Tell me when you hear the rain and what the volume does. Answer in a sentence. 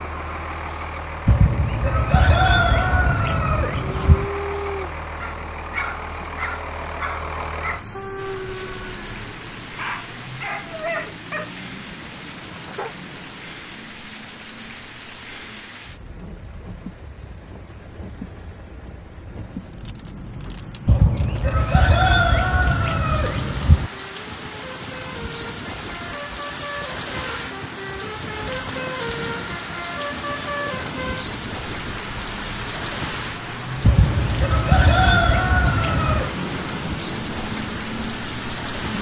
The rain can be heard from 8.2 to 38.9 s, getting louder.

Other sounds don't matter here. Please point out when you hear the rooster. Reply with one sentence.
The rooster can be heard from 1.2 to 4.3 s, from 20.9 to 23.9 s and from 33.8 to 36.4 s.